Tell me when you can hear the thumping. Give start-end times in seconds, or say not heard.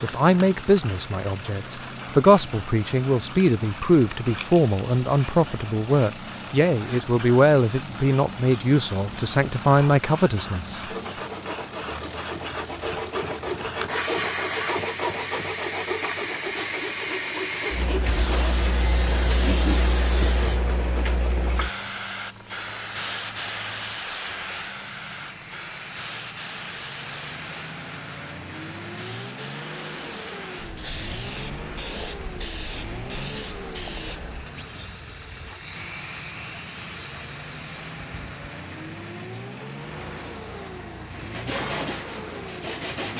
34.5-35.0.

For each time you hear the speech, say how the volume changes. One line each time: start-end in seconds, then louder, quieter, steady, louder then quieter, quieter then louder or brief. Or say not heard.
0.0-10.8 steady.